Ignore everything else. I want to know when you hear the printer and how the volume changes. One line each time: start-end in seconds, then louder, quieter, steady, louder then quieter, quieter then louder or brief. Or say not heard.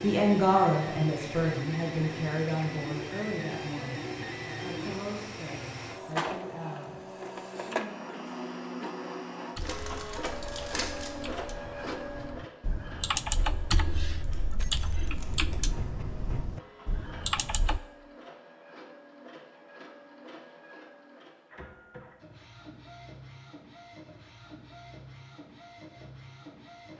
0.0-26.9 quieter.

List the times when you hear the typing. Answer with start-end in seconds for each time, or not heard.
9.6-17.8.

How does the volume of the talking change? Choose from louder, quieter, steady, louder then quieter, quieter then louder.
quieter.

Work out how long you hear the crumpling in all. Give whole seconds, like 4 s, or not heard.
3 s.